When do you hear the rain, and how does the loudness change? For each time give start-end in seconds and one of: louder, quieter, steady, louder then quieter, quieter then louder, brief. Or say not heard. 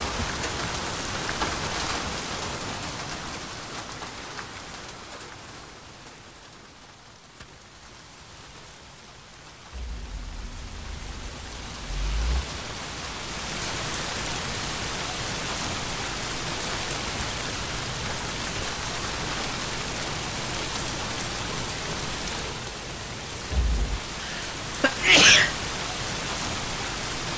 0.0-27.3 quieter then louder.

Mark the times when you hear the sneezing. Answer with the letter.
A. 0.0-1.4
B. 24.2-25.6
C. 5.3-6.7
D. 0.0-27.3
B.